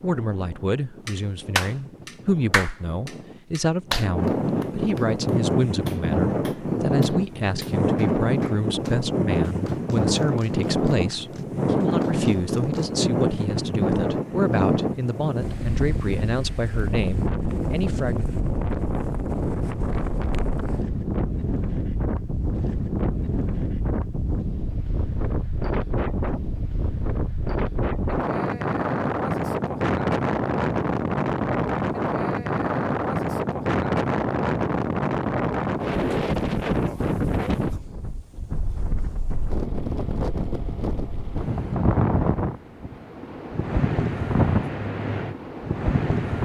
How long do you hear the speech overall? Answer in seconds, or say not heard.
18 s.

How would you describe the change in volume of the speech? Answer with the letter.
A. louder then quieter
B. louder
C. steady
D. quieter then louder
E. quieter
C.